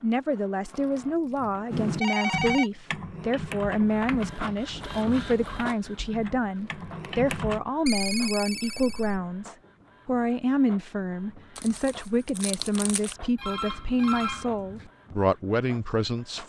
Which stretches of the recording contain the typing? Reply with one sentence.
You can hear the typing from 1.7 to 7.6 s.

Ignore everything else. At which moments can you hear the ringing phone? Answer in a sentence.
The ringing phone can be heard from 2.0 to 2.7 s, from 7.8 to 9.2 s and from 13.3 to 14.9 s.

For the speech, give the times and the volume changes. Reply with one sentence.
The speech can be heard from 0.0 to 16.4 s, at a steady volume.